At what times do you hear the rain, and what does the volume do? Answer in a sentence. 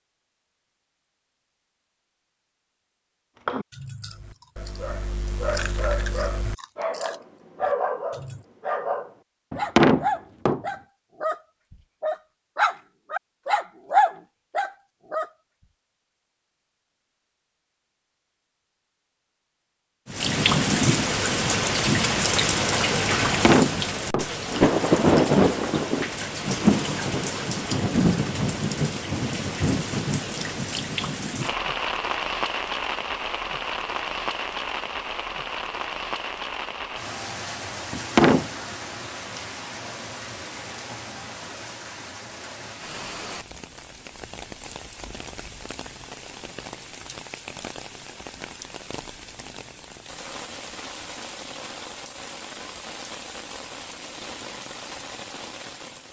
You can hear the rain from 20.1 to 56.0 s, getting quieter.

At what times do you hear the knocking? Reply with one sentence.
The knocking can be heard from 9.5 to 10.6 s, from 23.2 to 24.2 s and from 37.9 to 38.5 s.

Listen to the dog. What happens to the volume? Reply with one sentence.
The volume of the dog goes up.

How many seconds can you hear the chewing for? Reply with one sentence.
The chewing can be heard for 5 seconds in total.